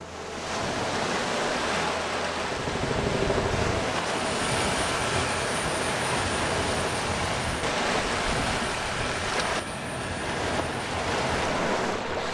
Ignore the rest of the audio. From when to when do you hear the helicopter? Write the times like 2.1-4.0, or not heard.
2.4-12.2.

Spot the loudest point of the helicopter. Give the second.
3 s.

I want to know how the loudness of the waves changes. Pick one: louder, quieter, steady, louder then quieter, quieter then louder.
steady.